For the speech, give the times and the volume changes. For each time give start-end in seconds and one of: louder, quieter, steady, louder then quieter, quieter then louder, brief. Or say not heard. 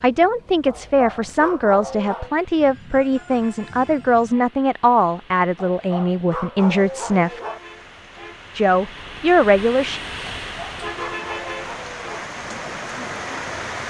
0.0-7.4 steady
8.6-10.0 brief.